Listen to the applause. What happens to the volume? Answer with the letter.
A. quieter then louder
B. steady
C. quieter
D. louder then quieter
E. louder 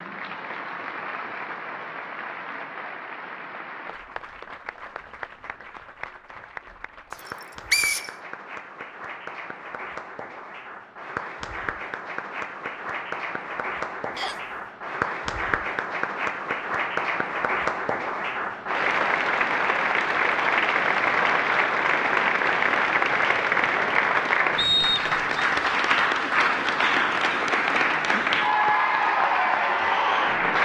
E.